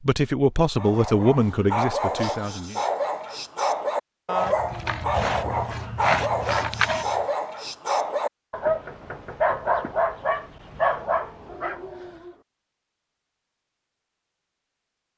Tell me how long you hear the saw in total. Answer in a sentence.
You can hear the saw for 3 seconds altogether.